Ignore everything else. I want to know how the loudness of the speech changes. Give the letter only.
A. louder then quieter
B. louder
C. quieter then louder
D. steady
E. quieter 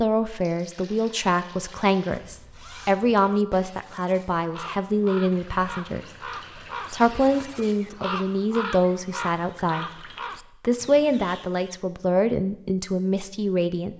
D.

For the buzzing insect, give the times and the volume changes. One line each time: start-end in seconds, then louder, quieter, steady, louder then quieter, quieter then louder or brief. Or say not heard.
not heard.